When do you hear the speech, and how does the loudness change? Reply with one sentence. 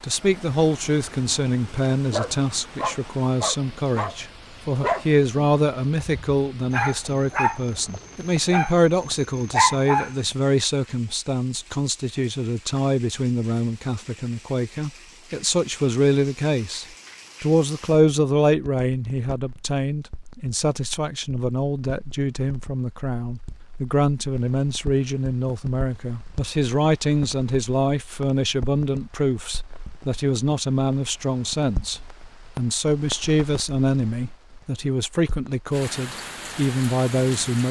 You can hear the speech from 0.0 to 37.6 s, at a steady volume.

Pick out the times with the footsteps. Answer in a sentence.
You can't hear the footsteps here.